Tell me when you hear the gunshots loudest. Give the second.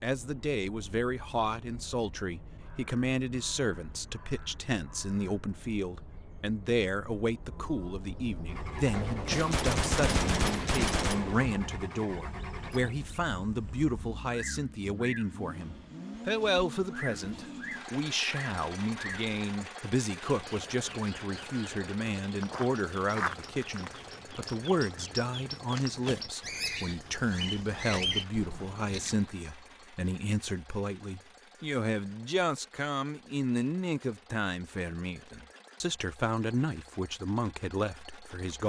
10 s.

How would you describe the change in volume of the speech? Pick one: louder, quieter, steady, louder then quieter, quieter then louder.
steady.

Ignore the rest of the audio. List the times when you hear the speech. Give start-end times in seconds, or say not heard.
0.0-38.6.